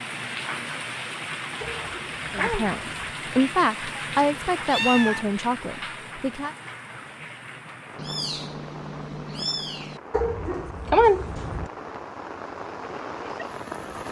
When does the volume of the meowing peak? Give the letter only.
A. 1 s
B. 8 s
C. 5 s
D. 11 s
C.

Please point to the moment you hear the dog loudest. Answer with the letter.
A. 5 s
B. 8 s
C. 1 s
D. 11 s
D.